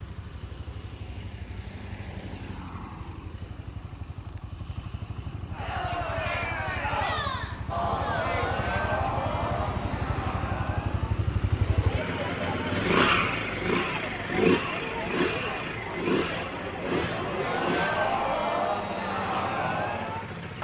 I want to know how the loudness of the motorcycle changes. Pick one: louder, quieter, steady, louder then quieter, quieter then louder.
louder then quieter.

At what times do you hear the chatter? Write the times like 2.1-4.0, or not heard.
5.5-20.6.